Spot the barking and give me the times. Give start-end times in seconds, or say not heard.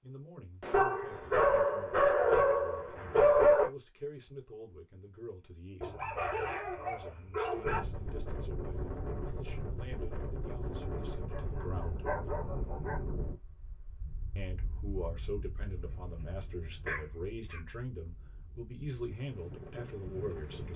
0.7-3.7, 5.8-7.8, 11.3-13.0, 16.9-17.6.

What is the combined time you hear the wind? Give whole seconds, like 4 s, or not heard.
13 s.